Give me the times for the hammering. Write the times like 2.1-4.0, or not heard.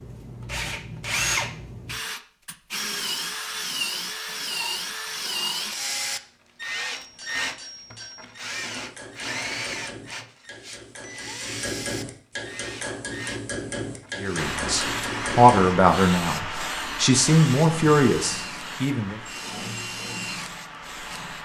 6.9-15.8.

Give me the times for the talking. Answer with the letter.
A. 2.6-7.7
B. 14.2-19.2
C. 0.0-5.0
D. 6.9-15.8
B.